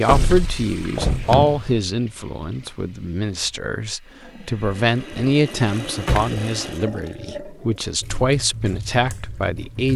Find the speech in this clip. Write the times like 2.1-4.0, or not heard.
0.0-9.9.